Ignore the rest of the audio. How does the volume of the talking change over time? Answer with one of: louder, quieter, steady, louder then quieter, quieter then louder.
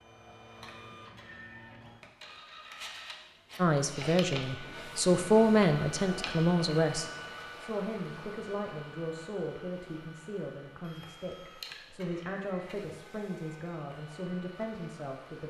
quieter.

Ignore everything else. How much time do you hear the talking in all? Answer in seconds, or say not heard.
12 s.